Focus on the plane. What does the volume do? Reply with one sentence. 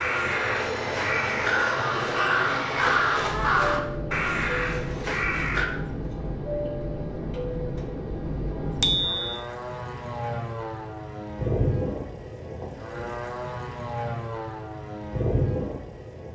The loudness of the plane stays about the same.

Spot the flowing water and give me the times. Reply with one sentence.
The flowing water can't be heard in this clip.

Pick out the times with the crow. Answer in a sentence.
The crow can be heard from 0.0 to 5.7 s.